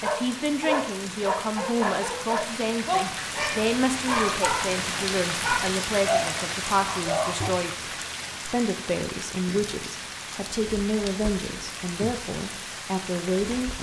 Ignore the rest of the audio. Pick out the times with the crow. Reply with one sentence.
You can't hear the crow here.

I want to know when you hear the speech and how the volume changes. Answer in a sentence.
You can hear the speech from 0.0 to 13.7 s, at a steady volume.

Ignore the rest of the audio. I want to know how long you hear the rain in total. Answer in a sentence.
You can hear the rain for 14 seconds altogether.